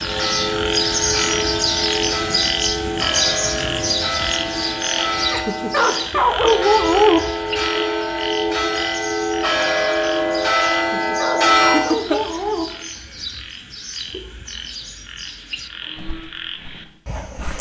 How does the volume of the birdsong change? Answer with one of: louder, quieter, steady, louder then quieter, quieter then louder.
quieter.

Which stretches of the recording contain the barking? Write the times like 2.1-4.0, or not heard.
5.3-7.2, 10.8-12.7.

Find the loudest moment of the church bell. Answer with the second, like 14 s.
12 s.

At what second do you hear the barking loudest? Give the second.
7 s.